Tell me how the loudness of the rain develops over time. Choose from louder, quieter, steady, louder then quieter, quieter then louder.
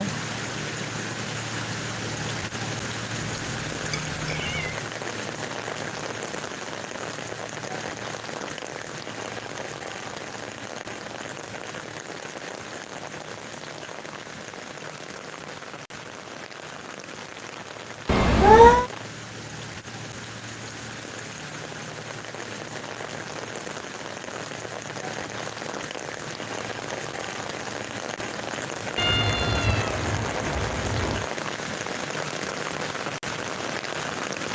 quieter then louder.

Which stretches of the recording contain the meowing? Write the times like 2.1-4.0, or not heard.
3.2-4.8, 18.1-18.9, 28.9-31.3.